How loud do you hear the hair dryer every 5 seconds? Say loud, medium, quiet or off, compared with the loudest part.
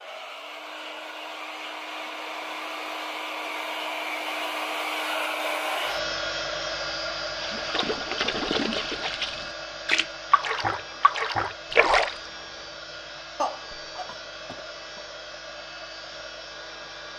loud, loud, medium, medium.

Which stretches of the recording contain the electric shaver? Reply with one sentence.
You can't hear the electric shaver here.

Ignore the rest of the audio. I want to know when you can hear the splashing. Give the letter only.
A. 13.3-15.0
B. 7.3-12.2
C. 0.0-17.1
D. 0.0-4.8
B.